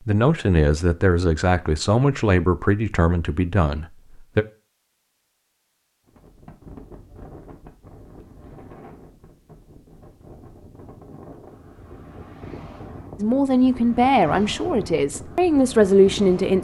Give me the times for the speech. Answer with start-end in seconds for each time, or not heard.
0.1-4.5, 13.2-16.5.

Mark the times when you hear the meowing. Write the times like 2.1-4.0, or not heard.
not heard.